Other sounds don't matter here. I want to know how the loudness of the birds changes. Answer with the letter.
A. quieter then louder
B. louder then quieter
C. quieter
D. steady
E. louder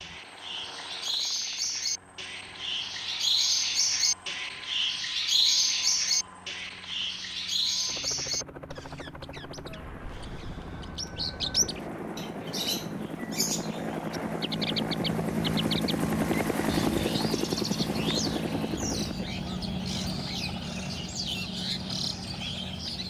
C.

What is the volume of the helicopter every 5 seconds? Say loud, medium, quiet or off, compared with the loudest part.
quiet, quiet, medium, loud, medium.